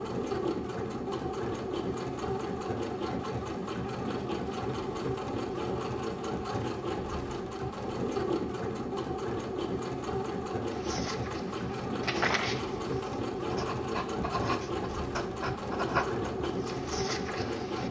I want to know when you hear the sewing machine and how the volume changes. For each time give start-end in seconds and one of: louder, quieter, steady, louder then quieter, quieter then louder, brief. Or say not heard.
0.0-17.8 steady.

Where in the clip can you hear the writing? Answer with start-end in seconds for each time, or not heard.
10.7-17.8.